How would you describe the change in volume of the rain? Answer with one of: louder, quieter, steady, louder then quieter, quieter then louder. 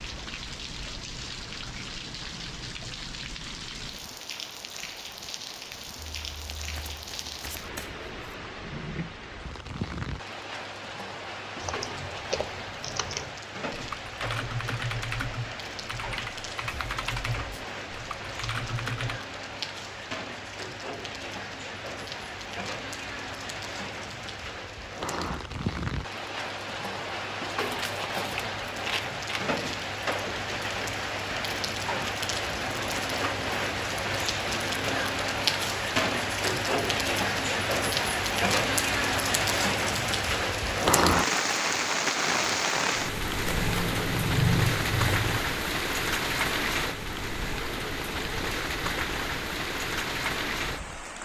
louder.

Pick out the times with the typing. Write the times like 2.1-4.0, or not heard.
11.6-19.2.